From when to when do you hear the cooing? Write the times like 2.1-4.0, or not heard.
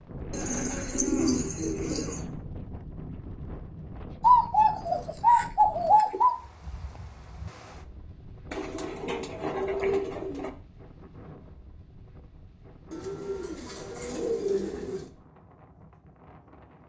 0.3-2.2, 4.2-6.3, 8.5-10.5, 12.9-15.1.